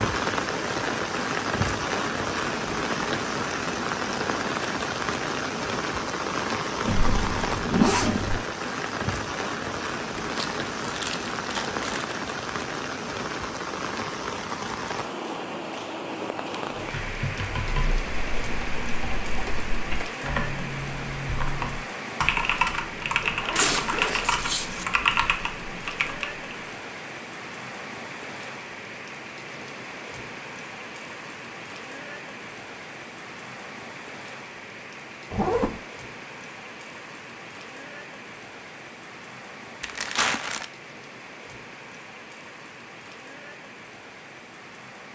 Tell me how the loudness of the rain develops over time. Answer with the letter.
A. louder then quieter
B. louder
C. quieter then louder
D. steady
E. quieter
E.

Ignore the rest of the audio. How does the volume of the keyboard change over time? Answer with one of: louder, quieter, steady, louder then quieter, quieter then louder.
louder.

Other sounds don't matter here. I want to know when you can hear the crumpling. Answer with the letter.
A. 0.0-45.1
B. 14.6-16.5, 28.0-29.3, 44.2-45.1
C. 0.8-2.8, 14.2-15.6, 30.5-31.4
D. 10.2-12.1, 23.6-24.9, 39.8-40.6
D.